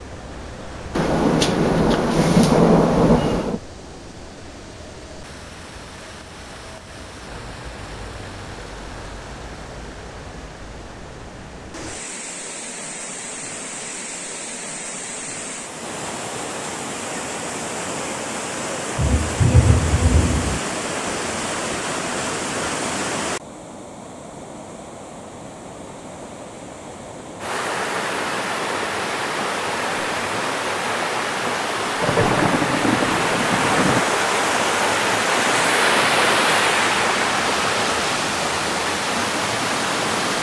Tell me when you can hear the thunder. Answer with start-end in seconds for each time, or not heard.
0.9-3.6, 18.9-20.6, 32.0-34.0.